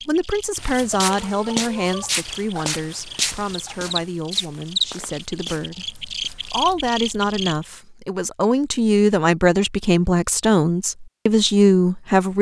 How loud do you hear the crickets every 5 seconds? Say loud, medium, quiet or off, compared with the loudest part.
loud, loud, off.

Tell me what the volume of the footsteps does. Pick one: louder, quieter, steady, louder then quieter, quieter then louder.
quieter.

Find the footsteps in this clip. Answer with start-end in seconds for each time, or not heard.
0.6-6.7.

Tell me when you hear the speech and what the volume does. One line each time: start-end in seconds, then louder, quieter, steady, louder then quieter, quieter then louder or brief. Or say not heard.
0.1-12.3 quieter then louder.